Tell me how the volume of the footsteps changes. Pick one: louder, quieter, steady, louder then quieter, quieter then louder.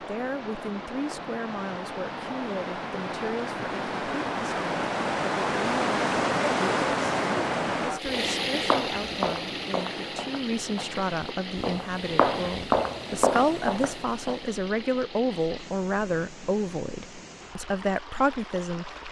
quieter then louder.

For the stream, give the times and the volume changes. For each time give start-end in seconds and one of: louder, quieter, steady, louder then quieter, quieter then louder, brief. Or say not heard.
0.0-19.0 louder then quieter.